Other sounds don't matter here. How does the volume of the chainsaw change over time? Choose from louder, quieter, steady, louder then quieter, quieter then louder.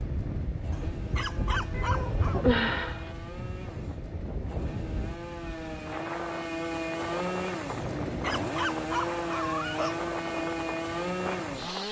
louder.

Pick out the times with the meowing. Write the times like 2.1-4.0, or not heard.
1.8-3.2.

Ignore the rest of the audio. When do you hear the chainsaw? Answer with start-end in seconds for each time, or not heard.
0.0-11.8.